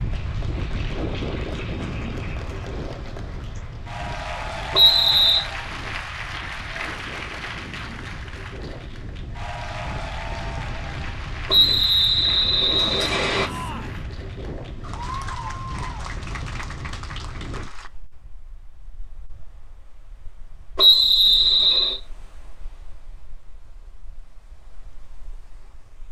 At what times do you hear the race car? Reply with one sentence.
You can't hear the race car here.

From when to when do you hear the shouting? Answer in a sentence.
The shouting can be heard from 13.4 to 14.1 s.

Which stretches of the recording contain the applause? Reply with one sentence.
You can hear the applause from 0.0 to 17.9 s.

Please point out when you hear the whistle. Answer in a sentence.
The whistle can be heard from 4.7 to 5.5 s, from 11.4 to 13.4 s and from 20.8 to 22.0 s.